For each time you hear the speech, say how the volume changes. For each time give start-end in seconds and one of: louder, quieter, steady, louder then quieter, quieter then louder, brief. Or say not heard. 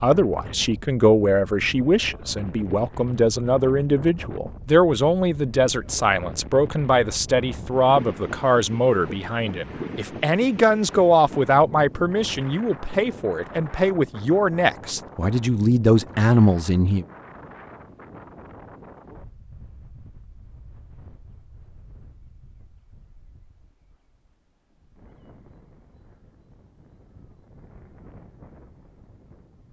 0.0-17.1 steady.